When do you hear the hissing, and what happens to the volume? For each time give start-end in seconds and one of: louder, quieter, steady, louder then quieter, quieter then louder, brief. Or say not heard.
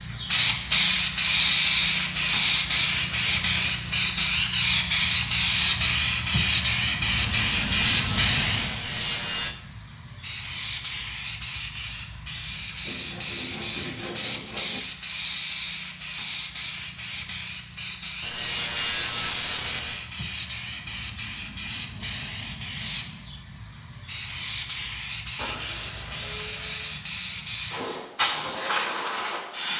0.0-29.7 quieter.